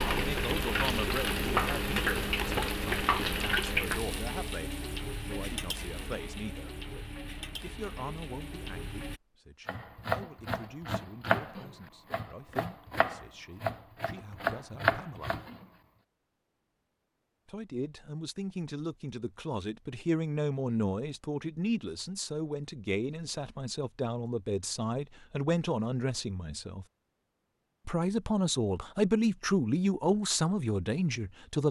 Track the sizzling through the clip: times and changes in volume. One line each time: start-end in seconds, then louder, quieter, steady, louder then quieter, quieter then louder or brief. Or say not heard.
0.0-9.2 quieter.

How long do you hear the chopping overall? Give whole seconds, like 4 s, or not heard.
6 s.